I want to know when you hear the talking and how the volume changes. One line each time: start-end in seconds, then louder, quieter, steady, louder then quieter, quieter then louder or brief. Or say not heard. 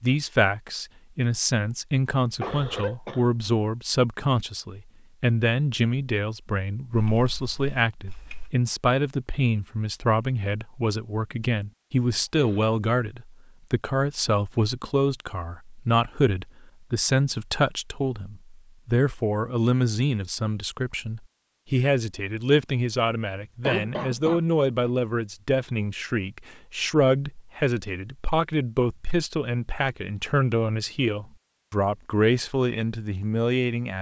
0.0-33.9 steady.